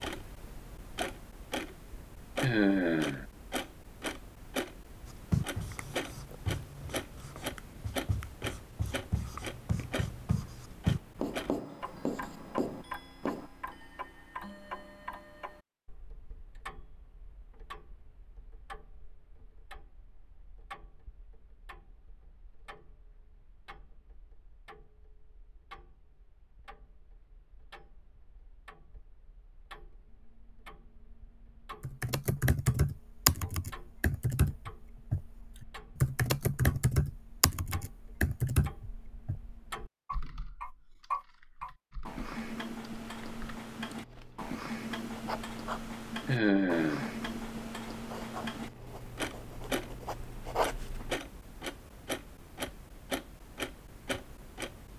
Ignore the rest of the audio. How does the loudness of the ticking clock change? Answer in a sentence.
The loudness of the ticking clock goes down, then up.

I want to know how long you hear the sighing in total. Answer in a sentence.
You can hear the sighing for 2 seconds altogether.